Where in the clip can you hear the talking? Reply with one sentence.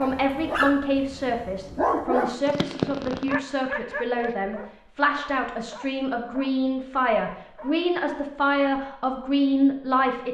You can hear the talking from 0.0 to 10.2 s.